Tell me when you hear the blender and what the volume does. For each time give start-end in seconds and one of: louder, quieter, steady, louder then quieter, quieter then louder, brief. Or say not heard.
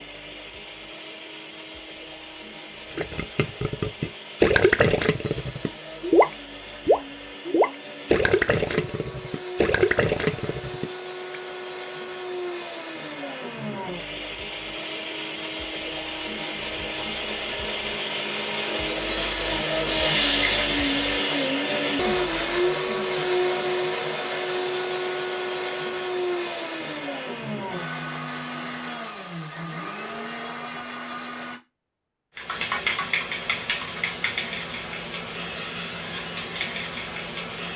0.0-31.6 louder then quieter.